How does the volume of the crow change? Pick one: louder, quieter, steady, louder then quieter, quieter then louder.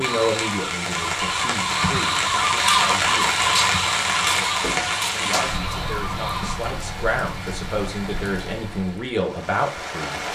louder then quieter.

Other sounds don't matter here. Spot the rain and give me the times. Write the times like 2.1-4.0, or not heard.
0.0-10.2.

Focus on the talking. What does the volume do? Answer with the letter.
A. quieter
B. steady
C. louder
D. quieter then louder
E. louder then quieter
D.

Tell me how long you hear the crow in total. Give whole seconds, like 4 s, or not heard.
7 s.